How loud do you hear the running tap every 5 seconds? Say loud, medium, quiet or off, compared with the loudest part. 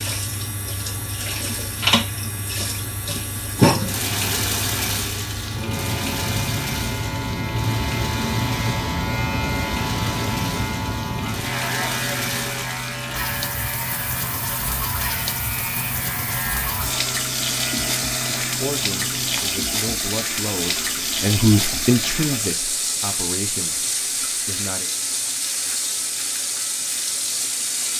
loud, medium, medium, loud, loud, loud.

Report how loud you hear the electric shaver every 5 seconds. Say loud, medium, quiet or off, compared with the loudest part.
medium, loud, loud, medium, quiet, quiet.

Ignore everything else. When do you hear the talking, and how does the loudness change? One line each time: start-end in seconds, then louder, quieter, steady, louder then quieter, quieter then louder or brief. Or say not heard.
18.4-24.9 louder then quieter.